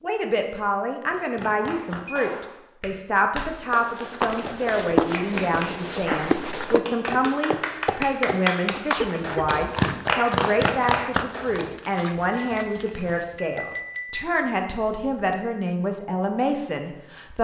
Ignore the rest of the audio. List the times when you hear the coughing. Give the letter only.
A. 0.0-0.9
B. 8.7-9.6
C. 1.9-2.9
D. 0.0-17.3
B.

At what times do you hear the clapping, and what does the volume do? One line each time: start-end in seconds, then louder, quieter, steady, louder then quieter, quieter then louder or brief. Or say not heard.
1.1-11.8 louder.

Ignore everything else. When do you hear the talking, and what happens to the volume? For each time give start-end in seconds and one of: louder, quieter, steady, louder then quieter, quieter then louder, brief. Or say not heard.
0.0-17.3 steady.